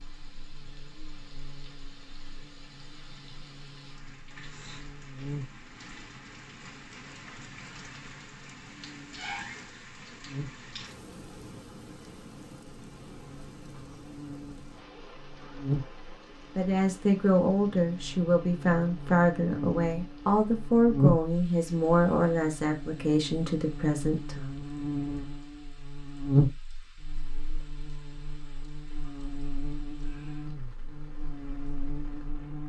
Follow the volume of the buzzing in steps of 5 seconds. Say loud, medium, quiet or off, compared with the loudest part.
quiet, quiet, quiet, medium, loud, loud, medium.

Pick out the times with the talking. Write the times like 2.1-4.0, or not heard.
16.6-24.5.